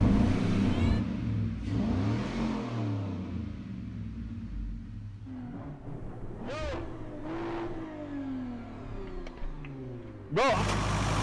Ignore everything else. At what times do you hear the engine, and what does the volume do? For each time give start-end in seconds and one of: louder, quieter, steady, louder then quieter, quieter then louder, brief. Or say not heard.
0.0-11.1 quieter then louder.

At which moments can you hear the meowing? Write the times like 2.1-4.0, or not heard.
0.2-1.1, 5.8-7.8.